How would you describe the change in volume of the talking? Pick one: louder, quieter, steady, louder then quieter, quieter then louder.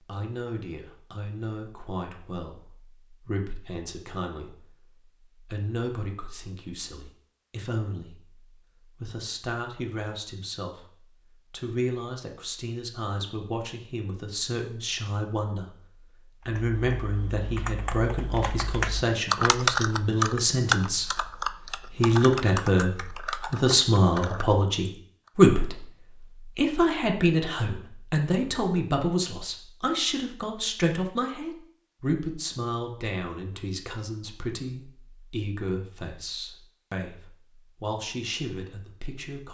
louder then quieter.